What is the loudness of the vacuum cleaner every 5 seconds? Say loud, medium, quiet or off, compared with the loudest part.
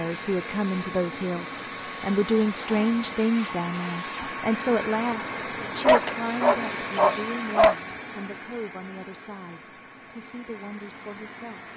loud, loud, medium.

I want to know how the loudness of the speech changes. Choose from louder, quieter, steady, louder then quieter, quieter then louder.
quieter.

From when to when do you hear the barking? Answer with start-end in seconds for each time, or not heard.
5.8-7.8.